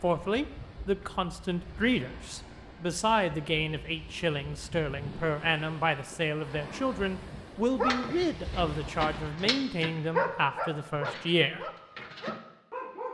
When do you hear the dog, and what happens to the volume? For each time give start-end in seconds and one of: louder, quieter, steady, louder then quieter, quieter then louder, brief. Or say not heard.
7.8-13.1 louder then quieter.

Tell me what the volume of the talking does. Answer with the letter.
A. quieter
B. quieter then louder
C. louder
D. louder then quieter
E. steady
E.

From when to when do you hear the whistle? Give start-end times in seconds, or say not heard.
not heard.